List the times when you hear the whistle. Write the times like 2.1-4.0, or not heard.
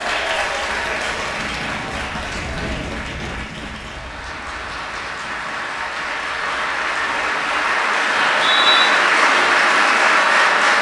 8.1-8.9.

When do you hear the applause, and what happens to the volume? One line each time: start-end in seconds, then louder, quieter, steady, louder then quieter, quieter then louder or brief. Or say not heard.
0.0-10.7 quieter then louder.